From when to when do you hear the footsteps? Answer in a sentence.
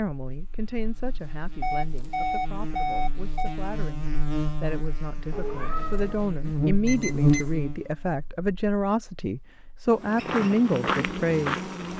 The footsteps can be heard from 10.0 to 11.9 s.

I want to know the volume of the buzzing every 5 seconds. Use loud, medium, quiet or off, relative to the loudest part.
medium, loud, medium.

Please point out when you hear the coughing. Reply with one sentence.
The coughing can't be heard in this clip.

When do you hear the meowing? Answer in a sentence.
You can hear the meowing from 5.3 to 6.3 s.